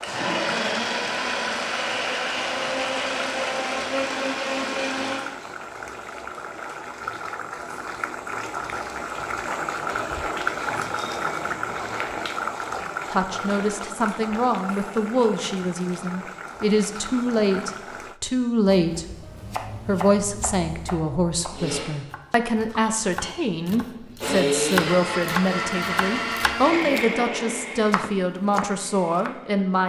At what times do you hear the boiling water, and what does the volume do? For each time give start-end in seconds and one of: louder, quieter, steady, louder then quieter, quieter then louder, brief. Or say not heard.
0.0-18.2 louder then quieter.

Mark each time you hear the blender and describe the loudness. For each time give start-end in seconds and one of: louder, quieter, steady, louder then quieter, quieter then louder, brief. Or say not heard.
0.0-5.3 steady
21.5-29.8 louder then quieter.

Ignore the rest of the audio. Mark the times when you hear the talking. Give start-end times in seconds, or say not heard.
13.1-29.8.